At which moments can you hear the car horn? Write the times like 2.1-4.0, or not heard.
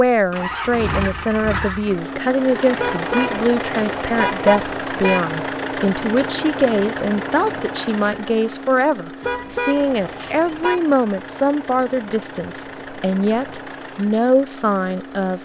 2.8-5.3, 9.2-10.8.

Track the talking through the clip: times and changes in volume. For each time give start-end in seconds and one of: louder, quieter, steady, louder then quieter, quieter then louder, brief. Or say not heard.
0.0-15.4 steady.